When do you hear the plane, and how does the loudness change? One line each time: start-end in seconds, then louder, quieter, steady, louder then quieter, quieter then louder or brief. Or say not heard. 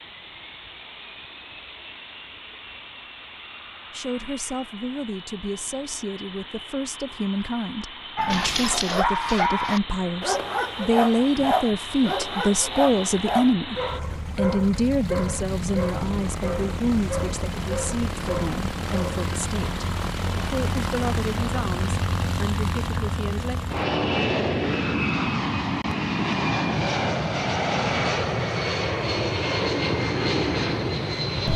0.0-31.5 louder.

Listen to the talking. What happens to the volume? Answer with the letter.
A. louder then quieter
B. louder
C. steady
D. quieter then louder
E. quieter
A.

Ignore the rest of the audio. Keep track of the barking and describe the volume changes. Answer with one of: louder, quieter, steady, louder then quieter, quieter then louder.
quieter.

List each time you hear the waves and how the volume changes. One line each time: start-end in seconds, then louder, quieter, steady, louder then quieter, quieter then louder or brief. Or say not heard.
not heard.